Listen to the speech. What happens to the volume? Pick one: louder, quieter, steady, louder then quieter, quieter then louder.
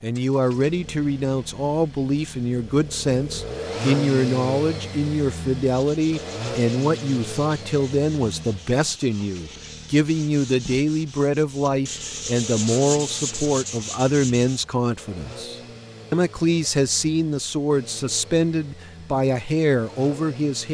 steady.